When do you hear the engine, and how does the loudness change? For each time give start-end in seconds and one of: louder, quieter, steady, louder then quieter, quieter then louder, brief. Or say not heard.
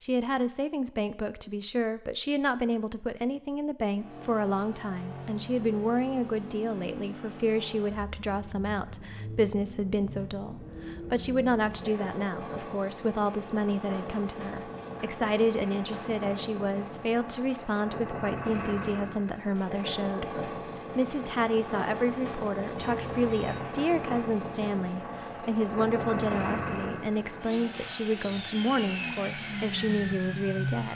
3.9-30.9 louder.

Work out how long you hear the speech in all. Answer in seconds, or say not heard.
31 s.